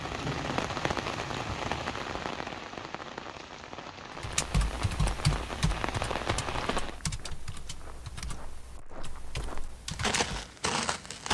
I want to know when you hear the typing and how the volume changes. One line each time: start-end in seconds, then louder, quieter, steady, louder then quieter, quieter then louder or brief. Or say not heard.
4.2-10.2 quieter.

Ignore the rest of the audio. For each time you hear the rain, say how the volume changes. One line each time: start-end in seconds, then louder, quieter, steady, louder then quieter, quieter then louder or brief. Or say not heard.
0.0-7.0 quieter then louder.